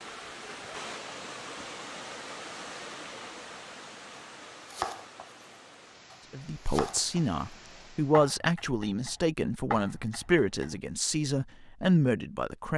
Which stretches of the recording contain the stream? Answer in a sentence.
The stream can be heard from 0.0 to 8.2 s.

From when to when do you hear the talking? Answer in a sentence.
You can hear the talking from 6.3 to 12.7 s.